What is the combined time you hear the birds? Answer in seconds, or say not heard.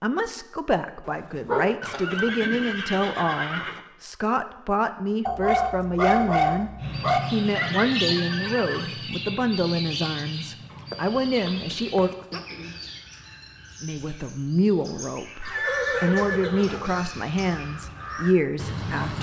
12 s.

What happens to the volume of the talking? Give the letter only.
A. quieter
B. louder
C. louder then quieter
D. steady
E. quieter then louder
D.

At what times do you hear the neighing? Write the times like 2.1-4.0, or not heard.
1.8-3.8, 7.5-8.9, 15.4-16.9.